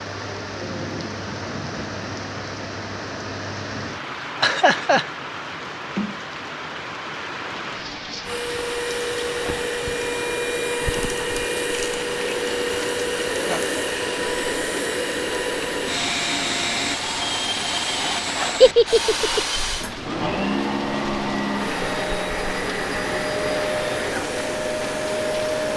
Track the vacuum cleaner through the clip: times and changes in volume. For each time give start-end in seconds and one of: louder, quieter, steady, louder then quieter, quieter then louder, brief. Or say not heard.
8.2-25.7 steady.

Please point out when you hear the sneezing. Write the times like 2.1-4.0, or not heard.
not heard.